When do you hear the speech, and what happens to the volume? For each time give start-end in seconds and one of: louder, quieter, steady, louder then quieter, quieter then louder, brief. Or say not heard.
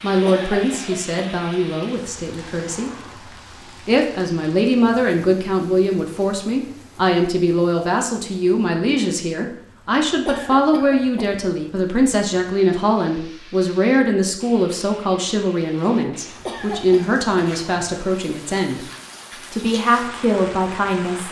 0.0-2.9 brief
3.9-18.9 steady
19.5-21.2 brief.